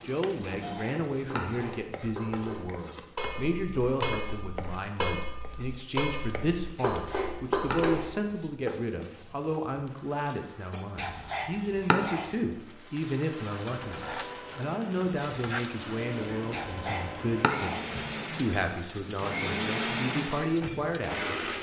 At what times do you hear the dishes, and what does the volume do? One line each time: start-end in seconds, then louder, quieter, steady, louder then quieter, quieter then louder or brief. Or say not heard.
0.0-8.2 louder.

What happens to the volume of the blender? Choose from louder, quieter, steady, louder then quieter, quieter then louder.
louder.